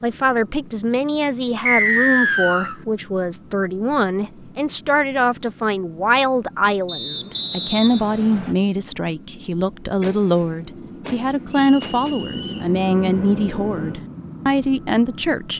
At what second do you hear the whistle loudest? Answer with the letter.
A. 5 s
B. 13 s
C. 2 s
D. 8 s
C.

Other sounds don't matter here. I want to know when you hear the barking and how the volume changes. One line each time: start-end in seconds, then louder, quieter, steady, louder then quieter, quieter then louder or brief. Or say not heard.
not heard.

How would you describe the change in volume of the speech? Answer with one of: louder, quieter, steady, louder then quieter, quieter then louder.
steady.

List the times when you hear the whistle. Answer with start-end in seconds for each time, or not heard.
1.6-2.8, 6.8-8.6, 11.5-12.7.